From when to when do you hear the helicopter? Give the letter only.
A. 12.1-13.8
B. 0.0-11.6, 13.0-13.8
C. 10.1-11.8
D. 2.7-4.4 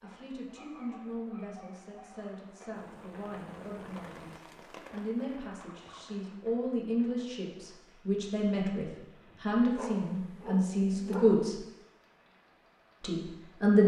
D.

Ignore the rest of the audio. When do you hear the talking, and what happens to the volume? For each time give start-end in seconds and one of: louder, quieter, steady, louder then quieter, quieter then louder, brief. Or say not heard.
0.0-11.6 louder
13.0-13.8 brief.